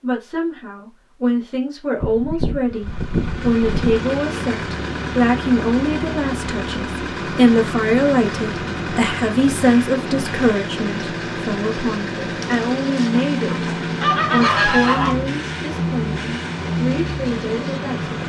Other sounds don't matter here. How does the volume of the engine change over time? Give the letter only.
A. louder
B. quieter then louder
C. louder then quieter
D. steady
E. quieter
D.